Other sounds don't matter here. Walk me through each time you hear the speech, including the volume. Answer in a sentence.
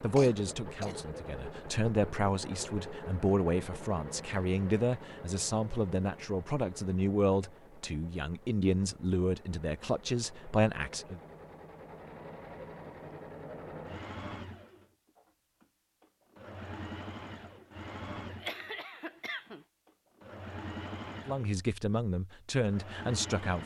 The speech can be heard from 0.0 to 11.2 s, at a steady volume; and briefly from 21.2 to 23.6 s.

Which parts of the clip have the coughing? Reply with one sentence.
You can hear the coughing from 0.1 to 1.0 s and from 18.2 to 19.6 s.